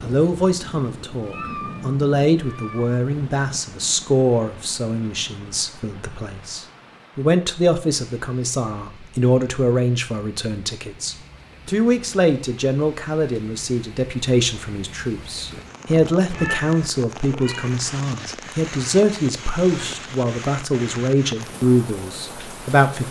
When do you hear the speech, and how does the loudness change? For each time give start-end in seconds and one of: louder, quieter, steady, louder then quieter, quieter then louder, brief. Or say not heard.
0.0-23.0 steady.